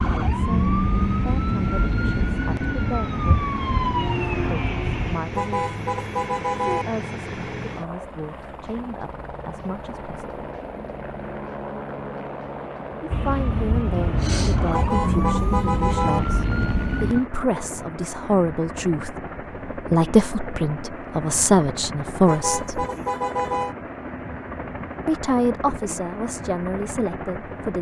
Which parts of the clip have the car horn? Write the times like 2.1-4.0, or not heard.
5.3-6.8, 14.7-16.2, 22.2-23.8.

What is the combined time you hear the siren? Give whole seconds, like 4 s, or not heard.
9 s.